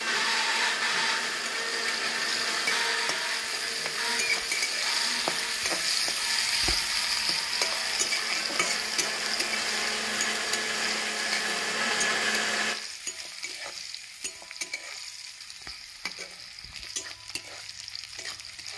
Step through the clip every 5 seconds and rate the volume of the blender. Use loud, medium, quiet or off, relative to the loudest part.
loud, medium, loud, off.